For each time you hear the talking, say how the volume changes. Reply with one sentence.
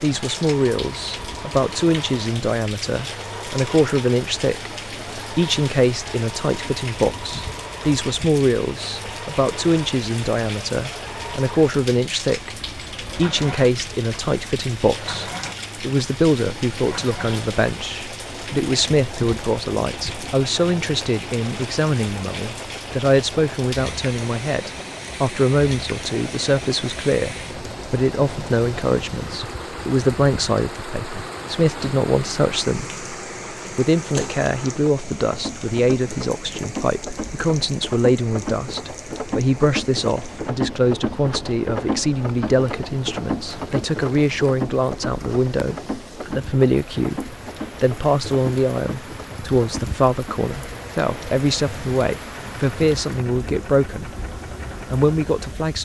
You can hear the talking from 0.0 to 32.9 s, at a steady volume; from 33.8 to 54.1 s, at a steady volume; and briefly from 54.9 to 55.7 s.